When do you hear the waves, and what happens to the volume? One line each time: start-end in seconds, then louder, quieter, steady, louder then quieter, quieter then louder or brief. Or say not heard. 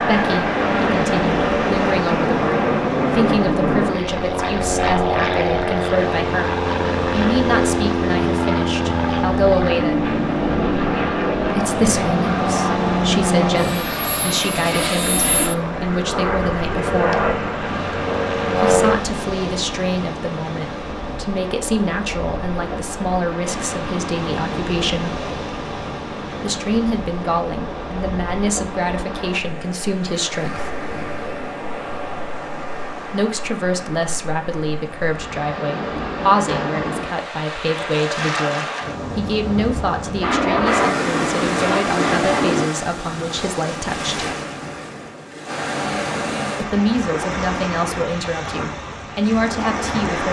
0.0-50.2 steady.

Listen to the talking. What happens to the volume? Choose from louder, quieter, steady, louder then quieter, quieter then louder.
steady.